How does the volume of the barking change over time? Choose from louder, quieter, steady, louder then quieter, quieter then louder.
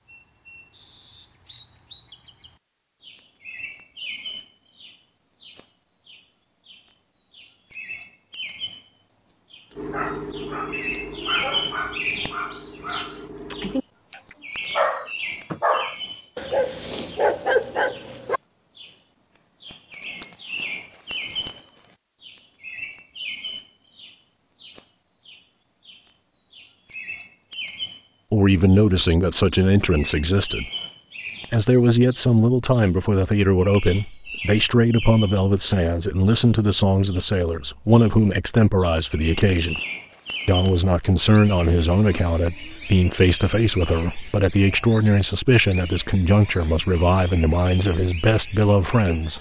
louder.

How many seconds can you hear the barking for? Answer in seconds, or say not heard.
9 s.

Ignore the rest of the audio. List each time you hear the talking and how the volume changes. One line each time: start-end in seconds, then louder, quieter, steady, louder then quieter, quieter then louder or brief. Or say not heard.
28.3-30.6 brief
31.5-39.8 steady
40.5-49.3 steady.